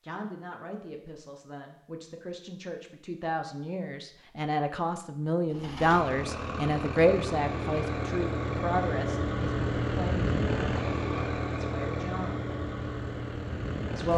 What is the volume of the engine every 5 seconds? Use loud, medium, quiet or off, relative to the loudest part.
off, loud, loud.